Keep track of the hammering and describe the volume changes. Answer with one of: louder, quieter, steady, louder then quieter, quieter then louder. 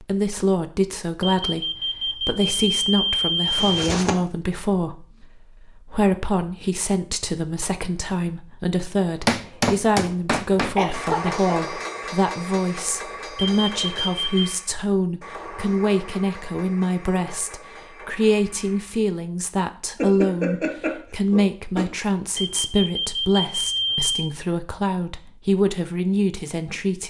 quieter.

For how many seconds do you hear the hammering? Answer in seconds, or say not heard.
10 s.